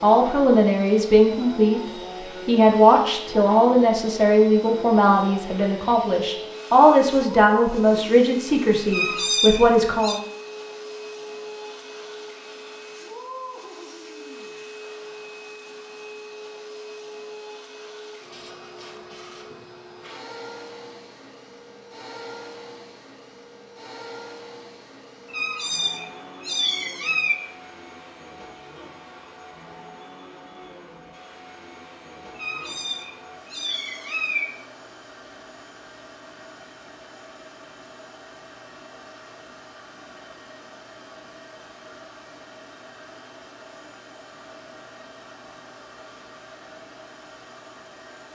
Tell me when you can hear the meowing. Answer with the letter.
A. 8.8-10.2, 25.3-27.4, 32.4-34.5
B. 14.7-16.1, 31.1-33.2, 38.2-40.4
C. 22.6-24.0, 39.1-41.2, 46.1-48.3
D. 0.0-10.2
A.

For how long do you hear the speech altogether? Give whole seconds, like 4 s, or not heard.
10 s.